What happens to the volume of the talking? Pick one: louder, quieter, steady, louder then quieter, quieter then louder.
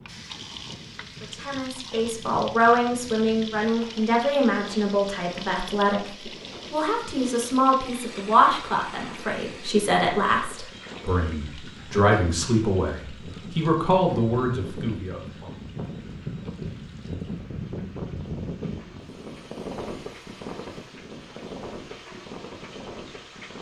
steady.